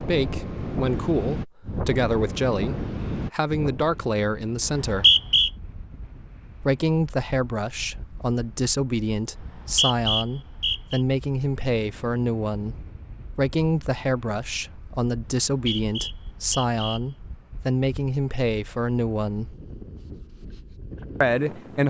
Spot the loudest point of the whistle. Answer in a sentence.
The loudest moment of the whistle is at 5 seconds.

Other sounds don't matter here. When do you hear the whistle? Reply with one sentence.
You can hear the whistle from 4.7 to 5.5 s, from 9.3 to 11.0 s and from 15.2 to 17.0 s.